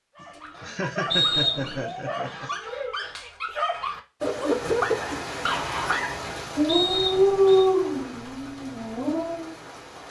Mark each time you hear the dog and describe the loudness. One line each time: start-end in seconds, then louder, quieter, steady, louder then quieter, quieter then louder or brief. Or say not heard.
0.1-9.6 louder.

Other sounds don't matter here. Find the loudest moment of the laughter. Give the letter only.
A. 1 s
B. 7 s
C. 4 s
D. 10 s
A.